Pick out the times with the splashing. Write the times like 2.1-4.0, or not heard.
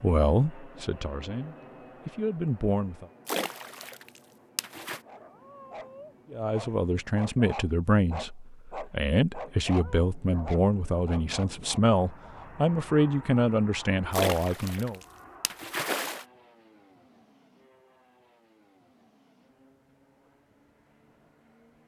3.2-5.0, 14.1-16.2.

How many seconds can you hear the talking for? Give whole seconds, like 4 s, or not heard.
12 s.